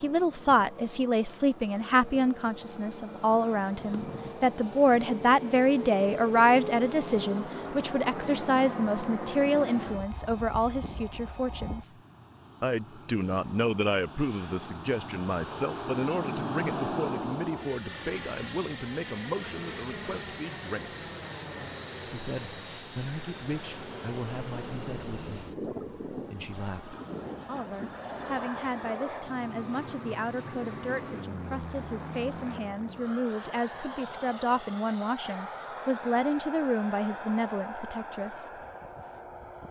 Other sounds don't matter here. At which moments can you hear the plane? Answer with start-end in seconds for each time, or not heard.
0.0-39.6.